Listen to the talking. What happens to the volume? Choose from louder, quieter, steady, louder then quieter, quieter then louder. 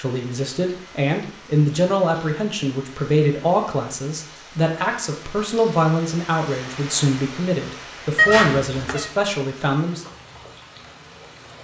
steady.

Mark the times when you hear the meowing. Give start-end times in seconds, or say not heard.
8.2-9.1.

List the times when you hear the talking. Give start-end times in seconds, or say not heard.
0.0-10.1.